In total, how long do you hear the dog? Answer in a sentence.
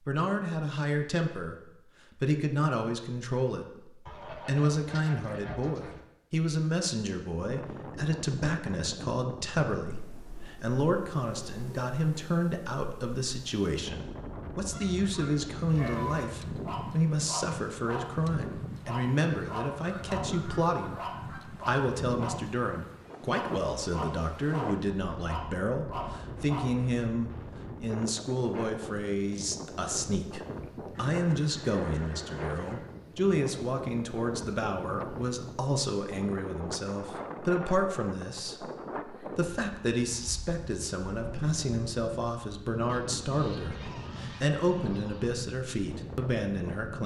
The dog can be heard for 8 seconds in total.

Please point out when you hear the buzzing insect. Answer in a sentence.
The buzzing insect can't be heard in this clip.